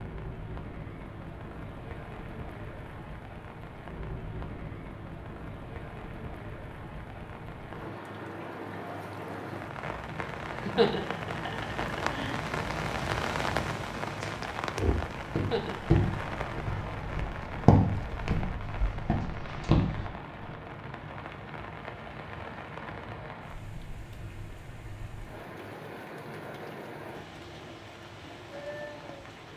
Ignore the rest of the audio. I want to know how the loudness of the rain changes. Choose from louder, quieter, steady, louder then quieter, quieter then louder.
louder then quieter.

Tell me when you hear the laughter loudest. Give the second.
11 s.